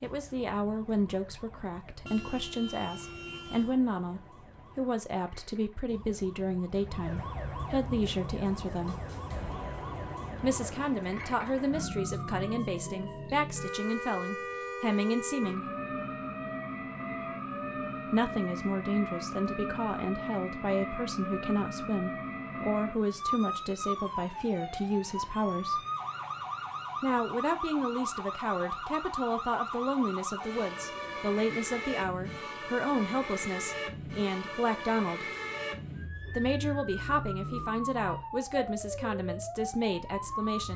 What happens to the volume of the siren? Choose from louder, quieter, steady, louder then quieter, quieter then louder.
louder.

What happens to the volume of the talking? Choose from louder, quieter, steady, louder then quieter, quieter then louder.
steady.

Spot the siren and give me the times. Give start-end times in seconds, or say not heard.
0.0-40.7.